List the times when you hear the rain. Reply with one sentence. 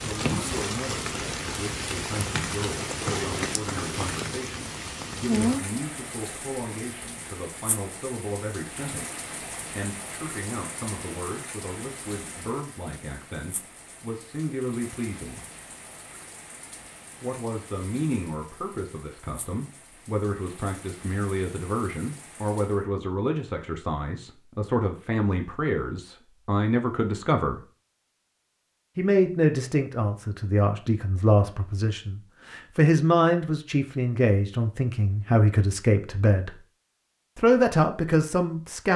You can hear the rain from 0.0 to 22.9 s.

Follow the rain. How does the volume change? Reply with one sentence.
The loudness of the rain goes down.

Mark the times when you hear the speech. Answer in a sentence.
You can hear the speech from 0.0 to 15.4 s, from 17.2 to 27.6 s, from 28.9 to 36.6 s and from 37.4 to 38.9 s.